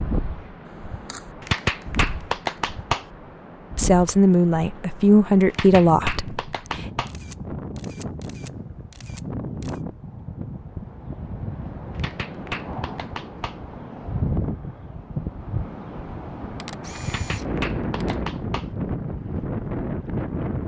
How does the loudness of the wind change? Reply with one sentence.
The loudness of the wind goes up.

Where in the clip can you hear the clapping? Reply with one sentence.
The clapping can be heard from 1.4 to 3.0 s, from 5.5 to 7.1 s, from 11.9 to 13.6 s and from 17.1 to 18.6 s.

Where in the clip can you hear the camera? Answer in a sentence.
The camera can be heard from 0.7 to 1.4 s, from 7.0 to 9.8 s and from 16.6 to 18.1 s.